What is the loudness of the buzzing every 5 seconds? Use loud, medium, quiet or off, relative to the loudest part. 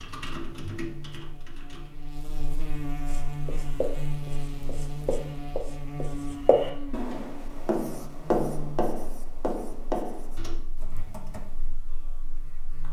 loud, loud, quiet.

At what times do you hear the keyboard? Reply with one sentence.
The keyboard can be heard from 0.0 to 1.9 s and from 10.3 to 12.8 s.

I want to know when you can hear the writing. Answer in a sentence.
You can hear the writing from 3.0 to 10.4 s.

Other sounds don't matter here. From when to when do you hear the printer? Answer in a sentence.
You can't hear the printer here.